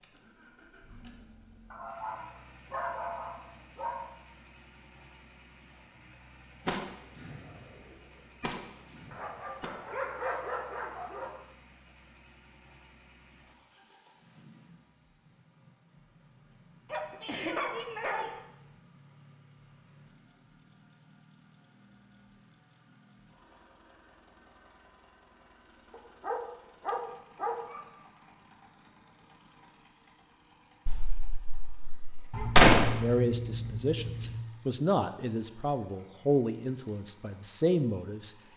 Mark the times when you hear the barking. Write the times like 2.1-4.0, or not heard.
1.7-4.1, 9.1-11.3, 16.9-18.4, 25.9-27.8, 32.3-34.4.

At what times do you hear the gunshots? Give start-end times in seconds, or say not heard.
6.7-7.3, 8.4-9.7, 30.9-32.9.